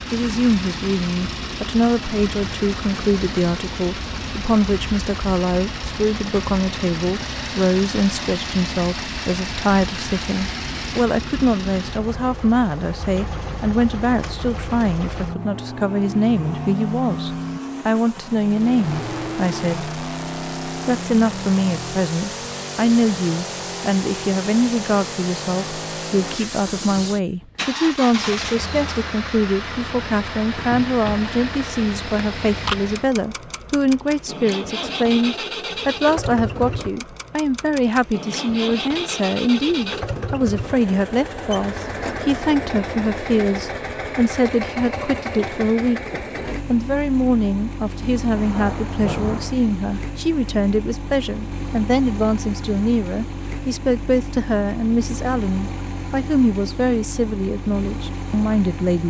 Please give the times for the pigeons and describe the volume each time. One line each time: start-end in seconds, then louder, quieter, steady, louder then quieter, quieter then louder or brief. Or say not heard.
not heard.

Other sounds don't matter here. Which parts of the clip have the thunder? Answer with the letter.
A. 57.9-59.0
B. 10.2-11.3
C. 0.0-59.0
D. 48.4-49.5
D.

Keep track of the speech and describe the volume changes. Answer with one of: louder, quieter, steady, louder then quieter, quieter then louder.
steady.